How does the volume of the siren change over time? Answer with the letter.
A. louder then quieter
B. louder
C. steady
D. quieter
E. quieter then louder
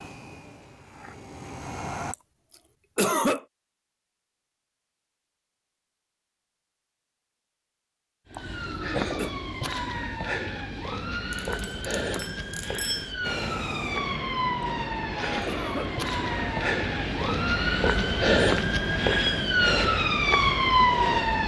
B.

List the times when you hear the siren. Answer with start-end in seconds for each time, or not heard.
8.3-21.4.